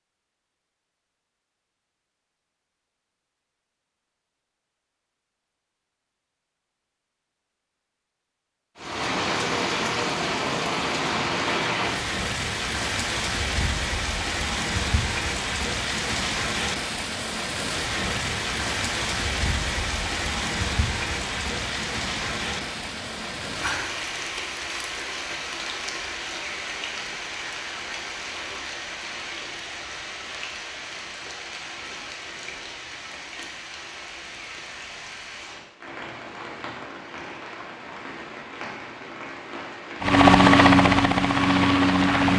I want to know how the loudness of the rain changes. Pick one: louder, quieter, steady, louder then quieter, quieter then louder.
quieter.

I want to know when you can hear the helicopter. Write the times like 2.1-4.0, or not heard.
40.0-42.3.